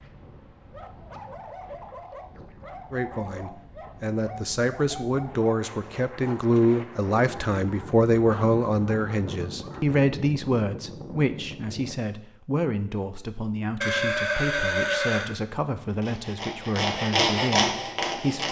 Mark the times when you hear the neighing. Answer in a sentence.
The neighing can be heard from 13.8 to 15.3 s.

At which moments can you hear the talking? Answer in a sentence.
You can hear the talking from 2.9 to 18.4 s.